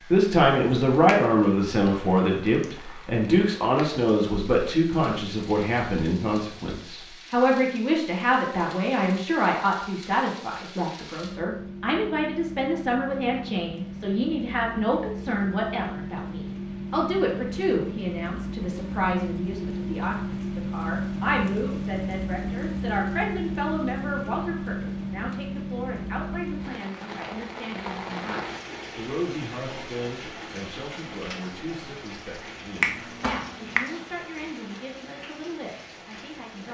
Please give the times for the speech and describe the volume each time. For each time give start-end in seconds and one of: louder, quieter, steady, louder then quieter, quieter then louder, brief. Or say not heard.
0.0-36.6 quieter.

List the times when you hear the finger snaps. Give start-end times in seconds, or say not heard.
32.8-33.9.